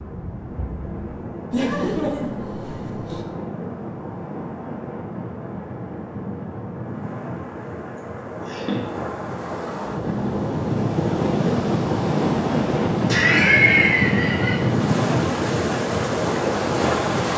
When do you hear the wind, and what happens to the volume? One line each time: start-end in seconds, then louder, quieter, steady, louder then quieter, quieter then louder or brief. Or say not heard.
0.0-17.3 louder.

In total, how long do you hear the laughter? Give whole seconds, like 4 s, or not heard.
4 s.